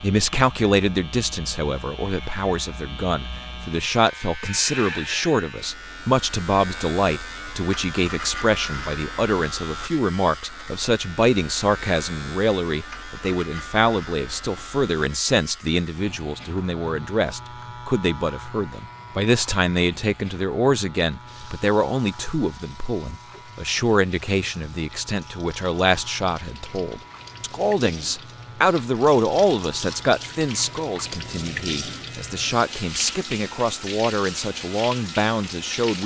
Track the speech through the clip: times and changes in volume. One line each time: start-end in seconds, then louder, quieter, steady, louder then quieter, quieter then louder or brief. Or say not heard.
0.0-36.0 steady.